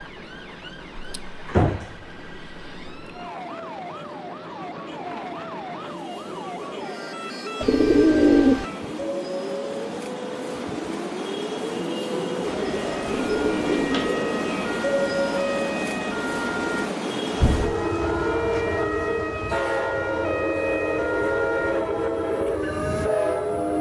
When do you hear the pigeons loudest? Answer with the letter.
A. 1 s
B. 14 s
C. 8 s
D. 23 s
C.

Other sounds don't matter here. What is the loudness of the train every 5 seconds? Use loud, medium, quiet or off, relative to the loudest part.
quiet, medium, loud, loud, loud.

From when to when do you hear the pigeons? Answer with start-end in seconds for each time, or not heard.
7.6-8.7, 13.1-13.9.